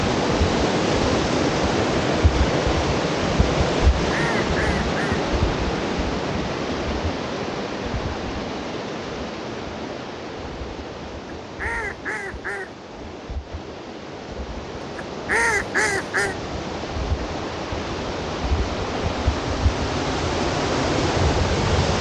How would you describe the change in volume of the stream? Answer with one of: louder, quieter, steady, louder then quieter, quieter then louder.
quieter then louder.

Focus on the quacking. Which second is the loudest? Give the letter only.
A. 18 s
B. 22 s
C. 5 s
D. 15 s
D.